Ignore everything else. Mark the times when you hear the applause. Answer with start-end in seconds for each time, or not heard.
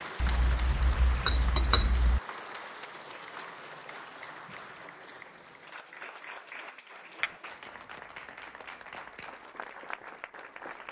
0.0-10.8.